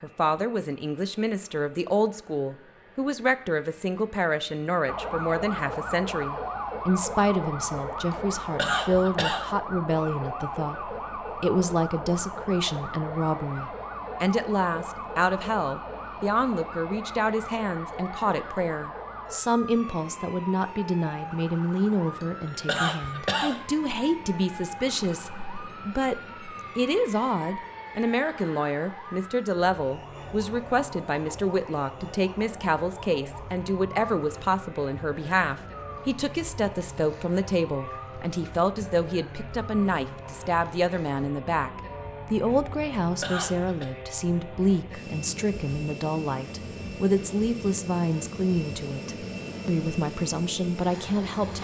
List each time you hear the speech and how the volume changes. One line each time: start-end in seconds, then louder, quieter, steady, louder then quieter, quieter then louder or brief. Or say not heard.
0.0-51.5 steady.